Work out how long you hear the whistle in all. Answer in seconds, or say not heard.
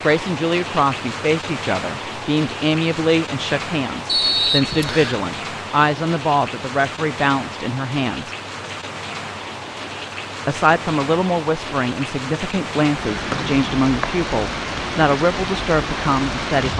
2 s.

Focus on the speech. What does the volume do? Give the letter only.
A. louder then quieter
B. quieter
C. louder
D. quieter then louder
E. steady
E.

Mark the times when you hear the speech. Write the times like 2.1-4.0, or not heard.
0.0-8.3, 10.4-16.7.